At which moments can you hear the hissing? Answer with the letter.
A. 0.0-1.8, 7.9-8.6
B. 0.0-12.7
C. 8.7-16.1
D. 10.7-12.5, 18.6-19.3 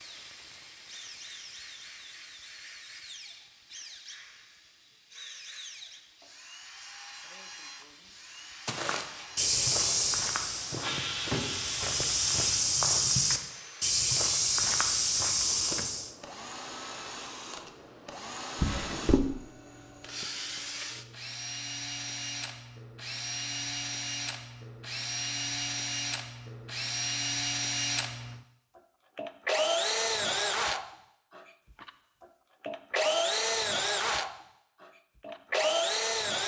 B.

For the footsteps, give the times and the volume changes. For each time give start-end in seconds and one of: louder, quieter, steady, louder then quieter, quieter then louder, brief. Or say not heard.
8.7-16.1 quieter then louder.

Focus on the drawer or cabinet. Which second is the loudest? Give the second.
19 s.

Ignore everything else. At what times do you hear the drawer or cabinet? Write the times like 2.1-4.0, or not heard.
10.7-12.5, 18.6-19.3.